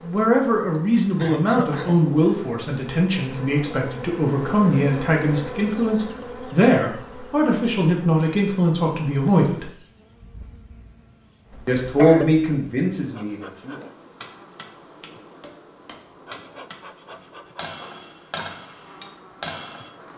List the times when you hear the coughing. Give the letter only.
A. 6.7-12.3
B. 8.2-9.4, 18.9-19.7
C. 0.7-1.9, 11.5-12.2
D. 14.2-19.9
C.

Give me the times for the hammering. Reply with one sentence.
You can hear the hammering from 14.2 to 19.9 s.